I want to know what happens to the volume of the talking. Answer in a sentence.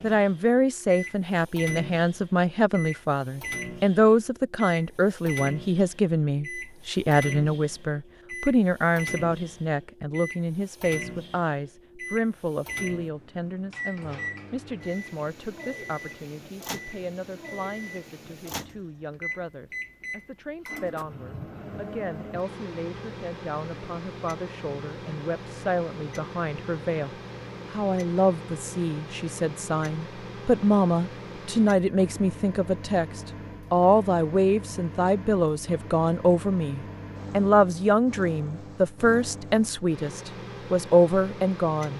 The loudness of the talking goes down, then up.